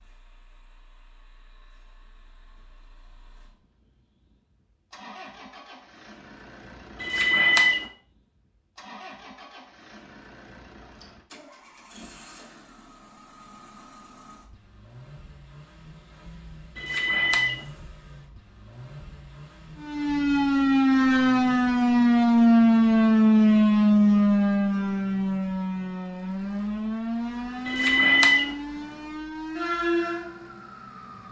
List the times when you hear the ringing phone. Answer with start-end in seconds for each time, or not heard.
7.0-7.9, 16.8-17.6, 27.6-28.6.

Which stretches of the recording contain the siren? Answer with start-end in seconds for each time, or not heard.
19.8-31.2.